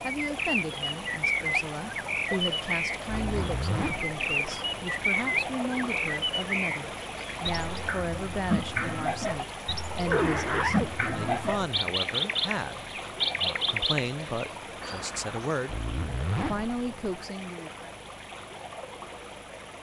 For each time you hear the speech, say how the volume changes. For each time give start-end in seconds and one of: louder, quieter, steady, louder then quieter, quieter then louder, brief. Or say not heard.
0.0-15.8 steady
16.5-17.9 brief.